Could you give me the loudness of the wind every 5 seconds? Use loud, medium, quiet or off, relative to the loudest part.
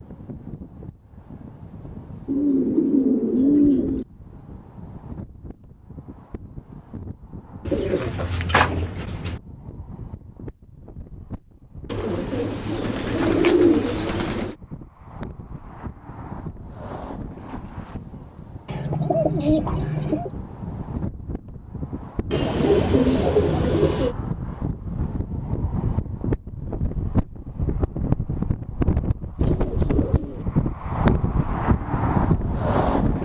quiet, quiet, quiet, quiet, medium, loud, loud.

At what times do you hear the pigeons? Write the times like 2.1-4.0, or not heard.
2.2-4.0, 7.7-9.4, 11.9-14.6, 18.6-20.3, 22.3-24.1, 29.4-30.4.